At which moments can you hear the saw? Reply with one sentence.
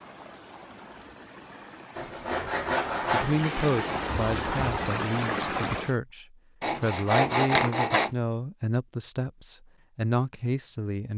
The saw can be heard from 1.9 to 3.5 s and from 6.6 to 8.1 s.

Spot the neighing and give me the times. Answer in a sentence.
You can't hear the neighing here.